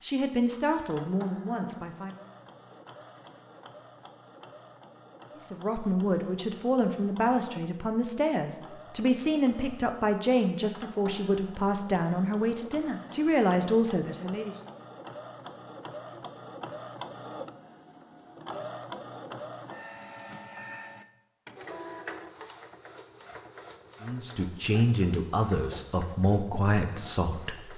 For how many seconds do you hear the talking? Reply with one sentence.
The talking can be heard for 15 seconds in total.